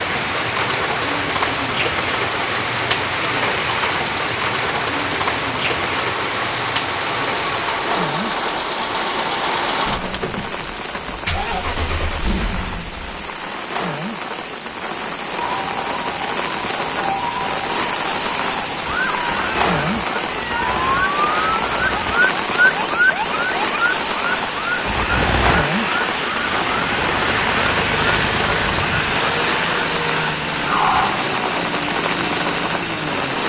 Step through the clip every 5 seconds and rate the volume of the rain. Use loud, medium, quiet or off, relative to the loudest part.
loud, loud, medium, loud, loud, loud, loud.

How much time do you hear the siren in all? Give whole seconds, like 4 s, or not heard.
16 s.